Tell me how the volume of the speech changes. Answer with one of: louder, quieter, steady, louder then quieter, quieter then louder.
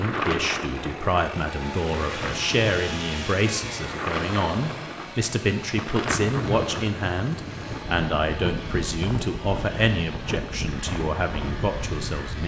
steady.